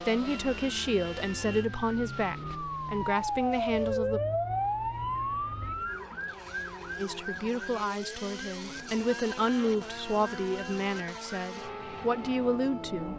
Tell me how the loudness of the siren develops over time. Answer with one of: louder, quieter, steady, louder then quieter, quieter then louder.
louder then quieter.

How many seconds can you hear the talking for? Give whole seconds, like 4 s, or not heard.
10 s.